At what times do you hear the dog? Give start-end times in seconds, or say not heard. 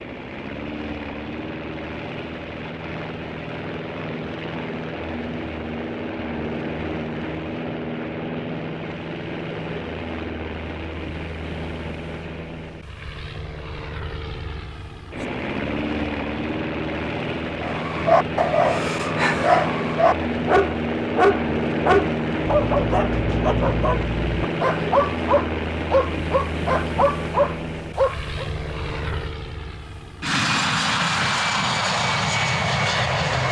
17.6-28.4.